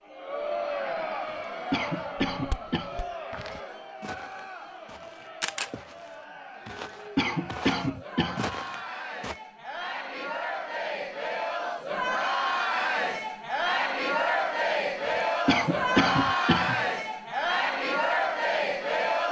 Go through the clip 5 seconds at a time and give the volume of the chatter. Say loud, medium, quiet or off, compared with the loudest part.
medium, quiet, loud, loud.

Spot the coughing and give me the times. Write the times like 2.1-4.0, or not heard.
1.2-3.0, 6.7-8.6, 15.4-16.9.